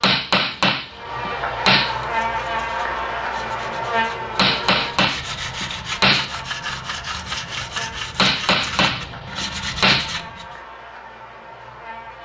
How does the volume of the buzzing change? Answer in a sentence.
The loudness of the buzzing goes down.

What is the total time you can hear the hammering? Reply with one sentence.
The hammering can be heard for 6 seconds in total.